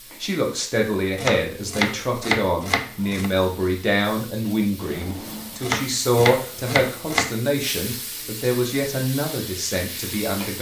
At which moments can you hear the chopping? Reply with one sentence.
You can hear the chopping from 1.1 to 3.3 s and from 5.6 to 7.3 s.